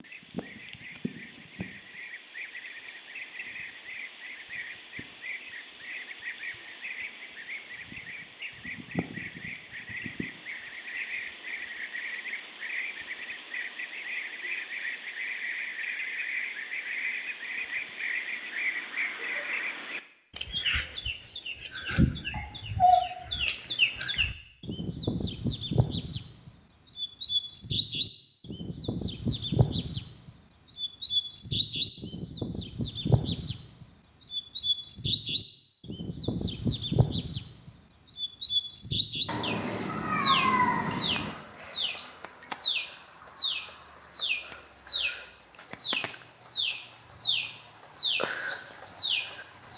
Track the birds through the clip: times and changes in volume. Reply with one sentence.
You can hear the birds from 0.0 to 49.7 s, getting louder.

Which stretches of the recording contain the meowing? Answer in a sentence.
You can hear the meowing from 22.3 to 23.0 s and from 39.2 to 41.3 s.